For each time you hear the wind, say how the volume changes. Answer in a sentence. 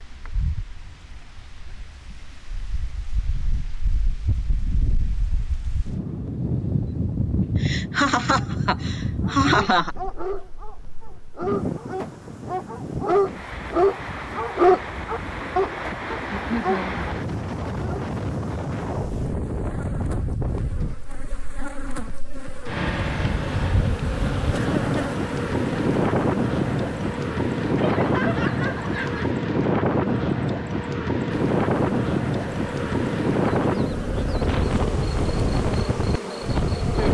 You can hear the wind from 0.0 to 37.0 s, getting louder.